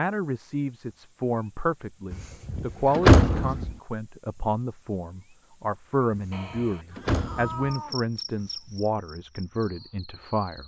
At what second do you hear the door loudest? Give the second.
3 s.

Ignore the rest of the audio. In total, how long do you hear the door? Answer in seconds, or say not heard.
3 s.